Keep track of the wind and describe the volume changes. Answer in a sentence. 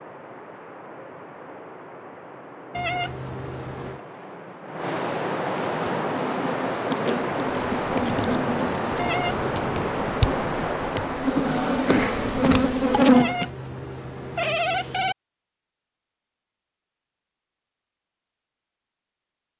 The loudness of the wind goes up.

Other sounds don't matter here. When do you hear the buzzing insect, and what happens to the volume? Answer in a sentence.
You can hear the buzzing insect from 5.5 to 13.5 s, getting louder.